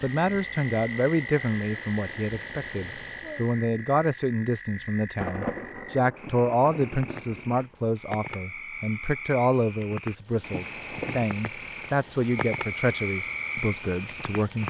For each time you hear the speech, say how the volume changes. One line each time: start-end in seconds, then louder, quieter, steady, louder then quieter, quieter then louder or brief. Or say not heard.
0.0-14.6 steady.